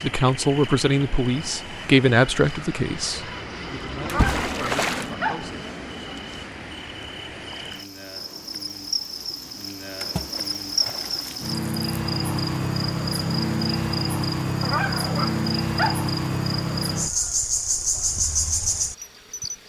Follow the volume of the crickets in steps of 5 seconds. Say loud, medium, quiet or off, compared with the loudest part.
quiet, medium, loud, loud.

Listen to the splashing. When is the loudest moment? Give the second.
5 s.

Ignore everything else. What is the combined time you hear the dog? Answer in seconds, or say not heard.
3 s.